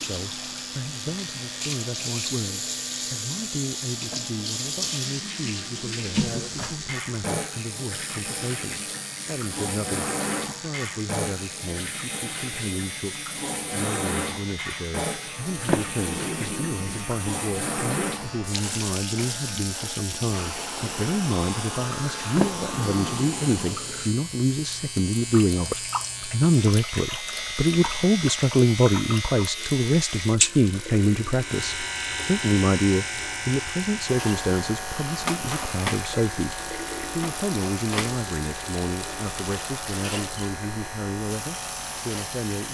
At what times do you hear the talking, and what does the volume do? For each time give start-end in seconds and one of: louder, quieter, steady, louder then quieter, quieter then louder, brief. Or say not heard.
0.1-42.7 louder then quieter.